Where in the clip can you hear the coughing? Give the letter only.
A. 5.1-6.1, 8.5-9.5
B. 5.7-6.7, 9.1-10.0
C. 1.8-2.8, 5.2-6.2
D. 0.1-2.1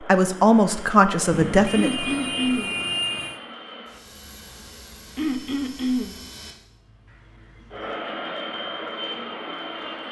C.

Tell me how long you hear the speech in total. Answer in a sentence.
The speech can be heard for 2 seconds in total.